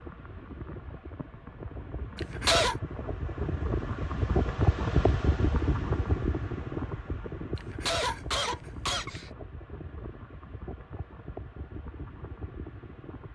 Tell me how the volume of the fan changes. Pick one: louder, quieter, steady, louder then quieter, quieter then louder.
louder then quieter.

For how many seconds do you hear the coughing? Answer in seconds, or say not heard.
2 s.